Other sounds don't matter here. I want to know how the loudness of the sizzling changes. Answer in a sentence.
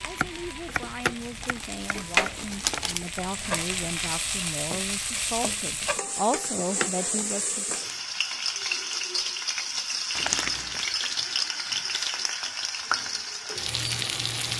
The volume of the sizzling stays about the same.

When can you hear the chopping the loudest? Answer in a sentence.
The volume of the chopping peaks at 1 second.